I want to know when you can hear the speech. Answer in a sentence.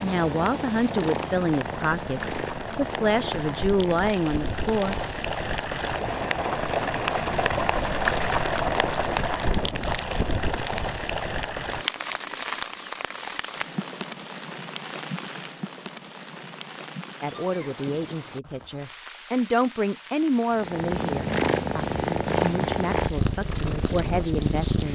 You can hear the speech from 0.0 to 5.0 s and from 17.2 to 24.9 s.